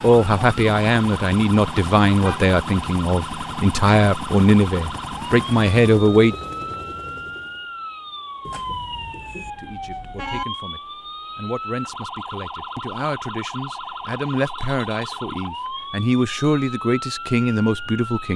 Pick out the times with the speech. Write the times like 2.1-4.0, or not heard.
0.0-6.3, 9.6-18.3.